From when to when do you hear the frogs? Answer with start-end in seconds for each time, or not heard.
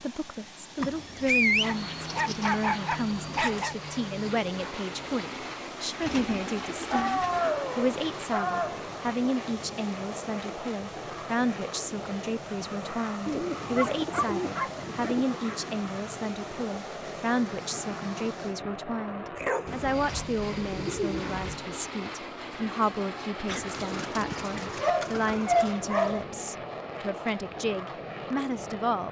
not heard.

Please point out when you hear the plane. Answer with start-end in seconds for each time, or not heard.
1.6-29.0.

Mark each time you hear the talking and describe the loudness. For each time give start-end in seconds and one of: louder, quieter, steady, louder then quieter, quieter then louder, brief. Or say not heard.
0.0-29.0 steady.